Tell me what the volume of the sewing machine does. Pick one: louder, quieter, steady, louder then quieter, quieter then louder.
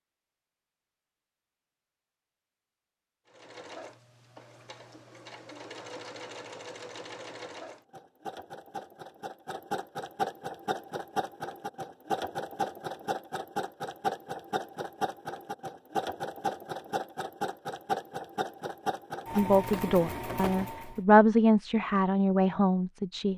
louder.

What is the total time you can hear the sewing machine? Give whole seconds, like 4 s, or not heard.
18 s.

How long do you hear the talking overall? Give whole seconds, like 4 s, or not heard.
4 s.